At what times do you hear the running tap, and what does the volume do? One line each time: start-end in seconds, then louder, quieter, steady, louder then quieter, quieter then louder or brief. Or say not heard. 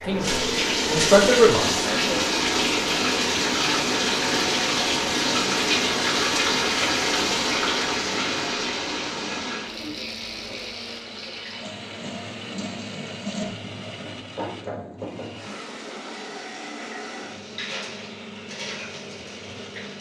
0.0-19.9 quieter.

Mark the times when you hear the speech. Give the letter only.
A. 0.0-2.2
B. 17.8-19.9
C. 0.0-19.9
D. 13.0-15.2
A.